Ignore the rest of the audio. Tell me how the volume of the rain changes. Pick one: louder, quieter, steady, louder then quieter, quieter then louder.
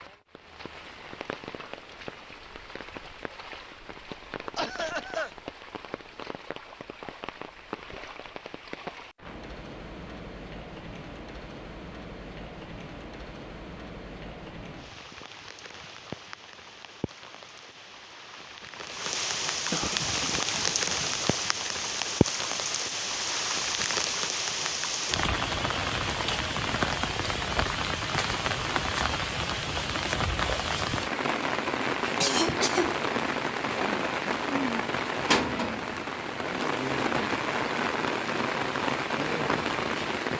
louder.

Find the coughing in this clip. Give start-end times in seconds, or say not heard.
4.5-5.3, 19.7-21.3, 32.2-33.0.